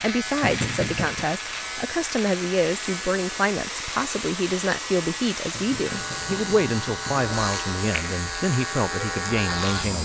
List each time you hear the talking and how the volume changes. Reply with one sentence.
The talking can be heard from 0.0 to 10.0 s, at a steady volume.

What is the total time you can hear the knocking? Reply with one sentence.
The knocking can be heard for 3 seconds in total.